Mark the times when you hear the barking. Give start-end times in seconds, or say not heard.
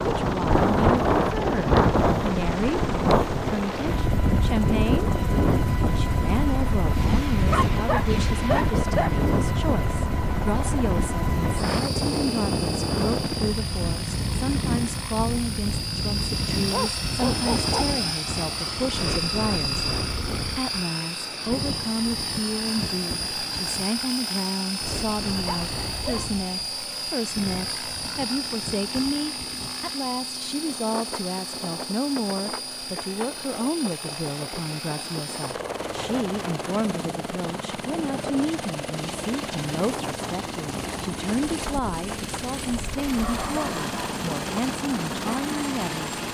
7.5-9.2, 16.7-17.9, 25.4-27.1, 43.1-44.2.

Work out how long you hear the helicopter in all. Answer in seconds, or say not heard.
46 s.